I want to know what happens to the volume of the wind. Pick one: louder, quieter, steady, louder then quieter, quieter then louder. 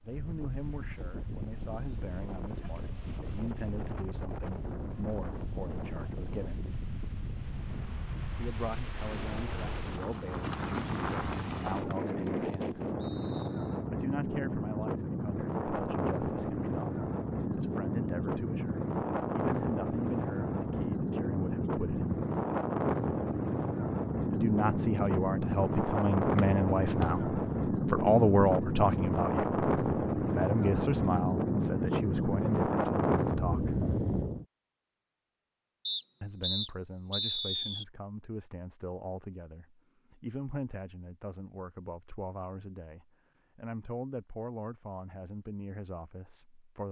louder.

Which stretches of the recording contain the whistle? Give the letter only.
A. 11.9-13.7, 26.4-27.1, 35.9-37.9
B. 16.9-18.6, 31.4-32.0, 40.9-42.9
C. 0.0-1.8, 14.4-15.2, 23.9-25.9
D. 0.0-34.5
A.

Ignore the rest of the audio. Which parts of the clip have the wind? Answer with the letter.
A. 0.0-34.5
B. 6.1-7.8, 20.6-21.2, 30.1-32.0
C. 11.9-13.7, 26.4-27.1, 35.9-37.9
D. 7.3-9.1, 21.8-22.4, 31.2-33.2
A.